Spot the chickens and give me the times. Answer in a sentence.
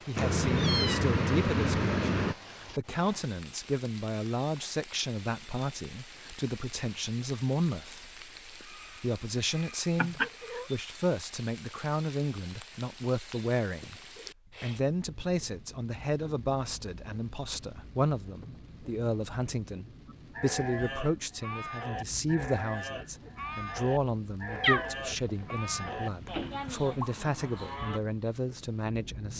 The chickens can't be heard in this clip.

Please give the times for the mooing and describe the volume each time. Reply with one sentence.
You can hear the mooing from 20.1 to 28.0 s, at a steady volume.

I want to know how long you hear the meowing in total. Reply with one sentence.
The meowing can be heard for 5 seconds in total.